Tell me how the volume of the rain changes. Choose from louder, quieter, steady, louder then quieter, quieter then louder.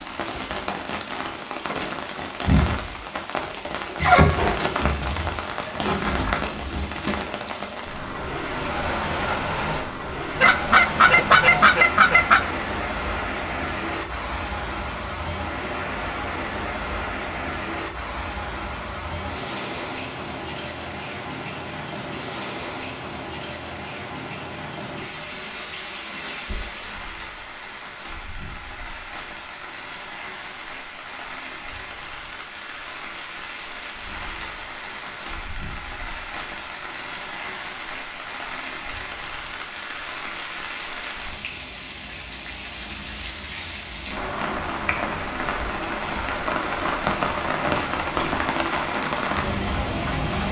quieter then louder.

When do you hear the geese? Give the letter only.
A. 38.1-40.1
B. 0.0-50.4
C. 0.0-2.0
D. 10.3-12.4
D.